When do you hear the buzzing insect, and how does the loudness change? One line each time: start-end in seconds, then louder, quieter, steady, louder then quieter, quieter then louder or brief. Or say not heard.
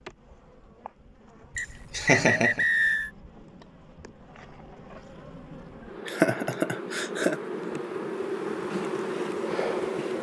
0.0-10.1 louder.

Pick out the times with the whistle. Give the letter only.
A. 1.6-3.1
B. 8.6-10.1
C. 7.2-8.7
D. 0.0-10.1
A.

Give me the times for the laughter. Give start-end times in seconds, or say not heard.
1.6-2.6, 6.0-7.4.